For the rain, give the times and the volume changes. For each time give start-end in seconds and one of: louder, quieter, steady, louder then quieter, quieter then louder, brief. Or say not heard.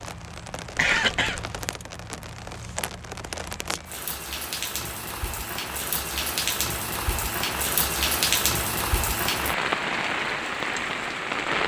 0.0-11.6 louder.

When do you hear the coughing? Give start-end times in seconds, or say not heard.
0.8-1.4.